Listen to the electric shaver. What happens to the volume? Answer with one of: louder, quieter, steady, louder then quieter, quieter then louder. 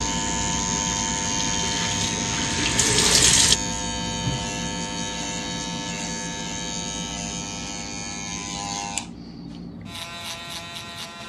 quieter.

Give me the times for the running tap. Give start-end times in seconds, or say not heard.
0.1-3.6.